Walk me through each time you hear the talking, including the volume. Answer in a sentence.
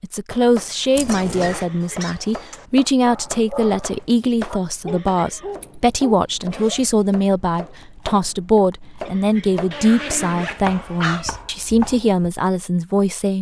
You can hear the talking from 0.0 to 13.3 s, at a steady volume.